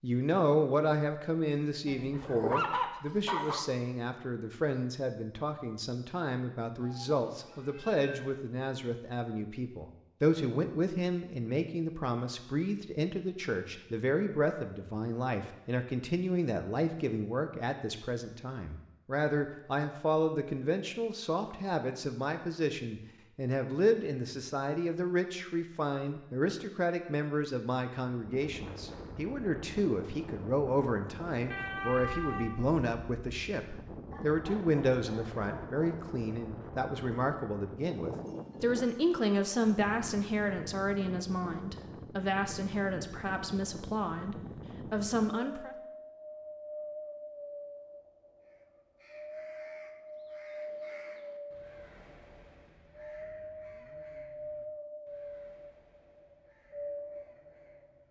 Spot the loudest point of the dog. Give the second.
3 s.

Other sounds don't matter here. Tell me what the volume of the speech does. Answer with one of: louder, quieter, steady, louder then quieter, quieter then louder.
steady.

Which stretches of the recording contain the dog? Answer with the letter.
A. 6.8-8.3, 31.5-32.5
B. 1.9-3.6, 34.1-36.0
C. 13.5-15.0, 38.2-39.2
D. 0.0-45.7
B.